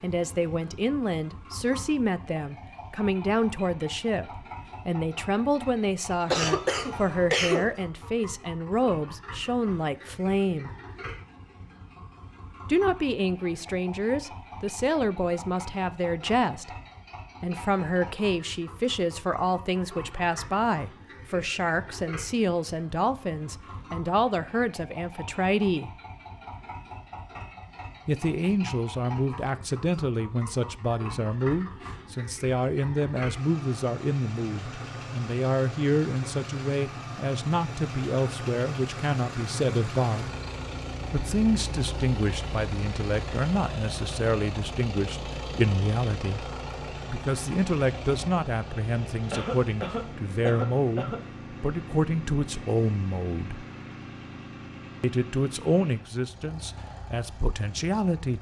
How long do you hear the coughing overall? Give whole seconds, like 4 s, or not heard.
3 s.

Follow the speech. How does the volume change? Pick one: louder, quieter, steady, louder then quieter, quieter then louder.
steady.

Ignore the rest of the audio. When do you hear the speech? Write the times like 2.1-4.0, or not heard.
0.0-10.7, 12.7-16.8, 17.4-25.9, 28.1-40.4, 41.1-53.6, 55.0-58.3.